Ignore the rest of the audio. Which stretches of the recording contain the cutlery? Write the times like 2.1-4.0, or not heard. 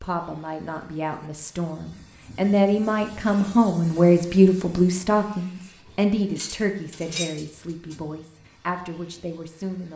6.3-8.0.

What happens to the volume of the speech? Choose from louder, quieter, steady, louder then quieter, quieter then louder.
louder then quieter.